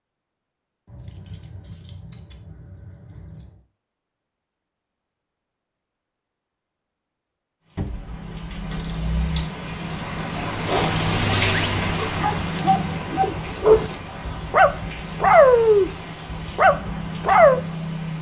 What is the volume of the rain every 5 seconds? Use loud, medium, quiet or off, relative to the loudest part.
off, medium, loud, medium.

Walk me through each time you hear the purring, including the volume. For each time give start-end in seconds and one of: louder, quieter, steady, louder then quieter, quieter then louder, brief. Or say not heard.
not heard.